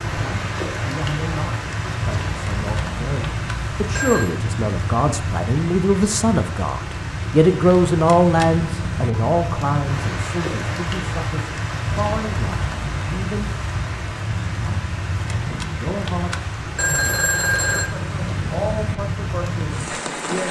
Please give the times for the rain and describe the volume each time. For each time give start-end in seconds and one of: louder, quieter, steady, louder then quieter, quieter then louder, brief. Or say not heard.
0.0-20.4 steady.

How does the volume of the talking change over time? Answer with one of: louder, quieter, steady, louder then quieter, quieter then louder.
louder then quieter.